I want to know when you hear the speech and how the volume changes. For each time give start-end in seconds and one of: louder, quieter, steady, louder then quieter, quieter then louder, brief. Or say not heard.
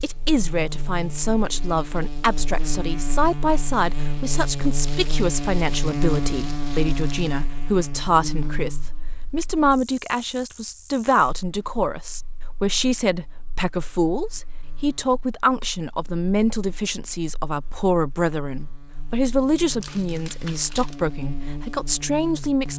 0.0-22.7 steady.